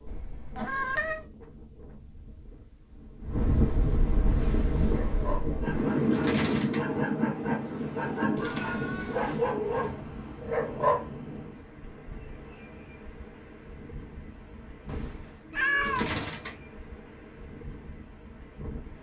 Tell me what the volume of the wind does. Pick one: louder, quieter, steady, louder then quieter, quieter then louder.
louder then quieter.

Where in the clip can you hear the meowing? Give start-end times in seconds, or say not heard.
0.1-1.2, 8.3-9.6, 14.8-16.1.